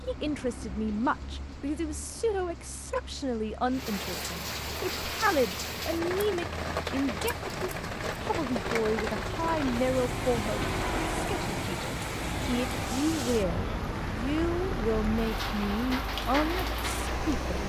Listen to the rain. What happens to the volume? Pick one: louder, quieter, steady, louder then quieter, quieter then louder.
louder.